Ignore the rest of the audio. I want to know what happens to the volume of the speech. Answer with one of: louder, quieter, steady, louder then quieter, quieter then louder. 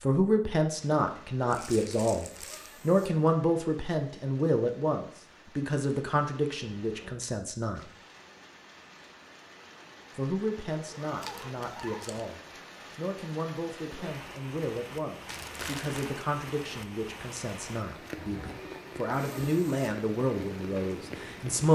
quieter then louder.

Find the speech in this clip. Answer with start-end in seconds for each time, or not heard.
0.0-7.9, 10.2-21.7.